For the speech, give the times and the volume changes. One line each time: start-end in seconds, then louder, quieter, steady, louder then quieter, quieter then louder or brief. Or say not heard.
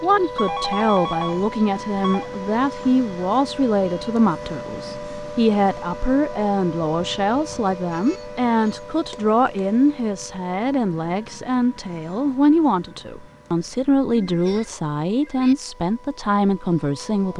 0.0-17.3 steady.